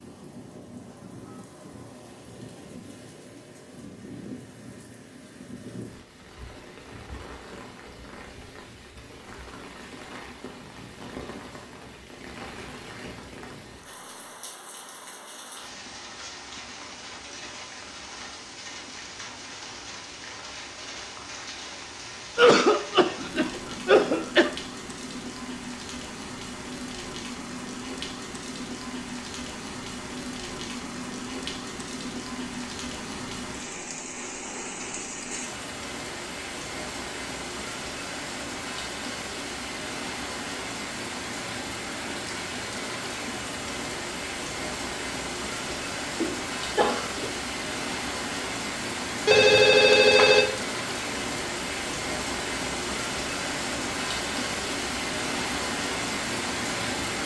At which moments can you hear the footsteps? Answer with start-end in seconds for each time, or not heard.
not heard.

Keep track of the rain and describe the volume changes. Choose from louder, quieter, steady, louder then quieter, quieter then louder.
louder.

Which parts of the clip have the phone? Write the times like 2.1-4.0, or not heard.
49.2-50.5.